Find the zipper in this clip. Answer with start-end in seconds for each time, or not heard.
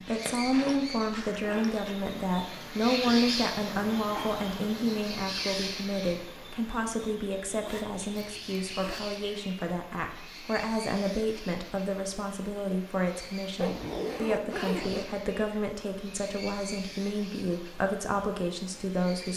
0.5-1.9, 7.5-9.0, 13.6-15.1.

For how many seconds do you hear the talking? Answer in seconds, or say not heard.
19 s.